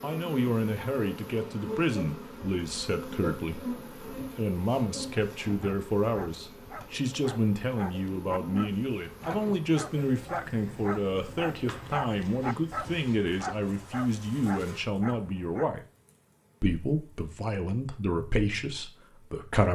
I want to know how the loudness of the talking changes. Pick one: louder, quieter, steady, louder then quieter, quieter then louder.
steady.